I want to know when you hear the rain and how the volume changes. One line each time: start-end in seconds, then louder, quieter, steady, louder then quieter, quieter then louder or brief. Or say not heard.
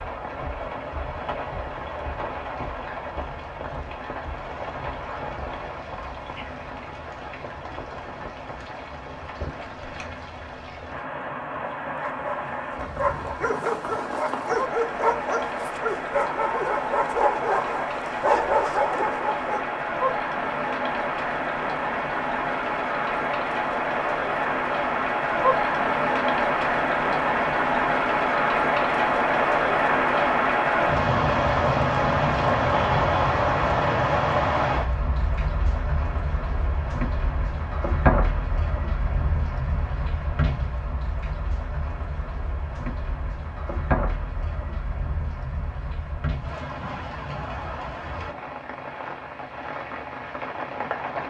0.0-51.2 louder then quieter.